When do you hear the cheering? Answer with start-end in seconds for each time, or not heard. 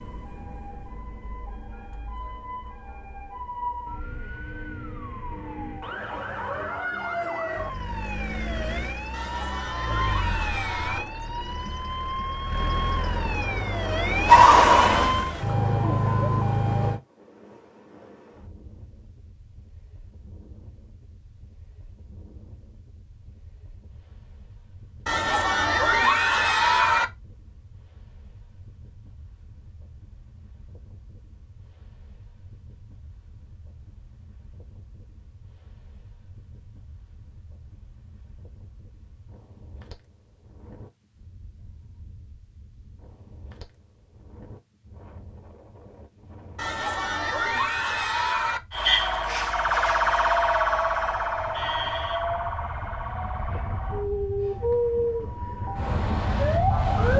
9.1-11.1, 25.1-27.1, 46.5-48.6.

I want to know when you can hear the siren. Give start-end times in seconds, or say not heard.
0.0-17.0, 48.7-57.1.